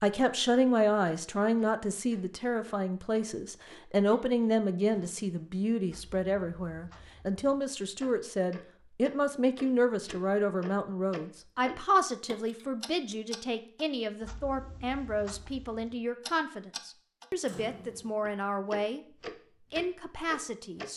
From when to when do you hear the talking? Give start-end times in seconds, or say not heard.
0.0-19.0, 19.7-20.9.